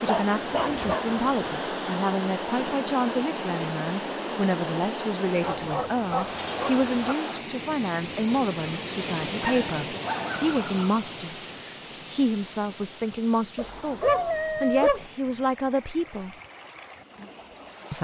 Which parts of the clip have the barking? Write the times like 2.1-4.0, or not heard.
0.1-1.4, 5.4-7.2, 9.4-11.0, 13.6-15.1.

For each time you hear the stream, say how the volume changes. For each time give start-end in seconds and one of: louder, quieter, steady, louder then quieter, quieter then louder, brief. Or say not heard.
0.0-17.9 quieter.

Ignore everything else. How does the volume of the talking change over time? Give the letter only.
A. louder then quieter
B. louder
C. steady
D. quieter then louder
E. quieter
C.